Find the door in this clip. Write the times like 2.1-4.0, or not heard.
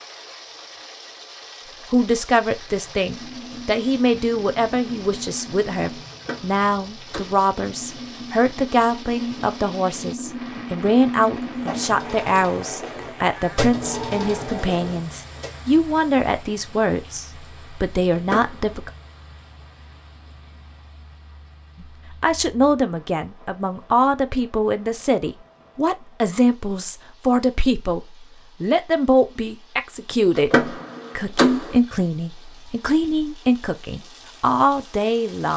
6.1-7.4, 18.1-18.8, 30.4-31.8.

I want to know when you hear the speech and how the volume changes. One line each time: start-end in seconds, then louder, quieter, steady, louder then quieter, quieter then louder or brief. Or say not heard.
1.9-18.9 steady
21.8-35.5 steady.